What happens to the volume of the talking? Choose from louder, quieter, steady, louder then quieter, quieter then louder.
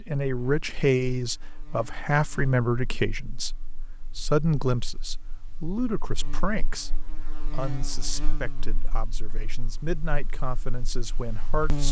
quieter.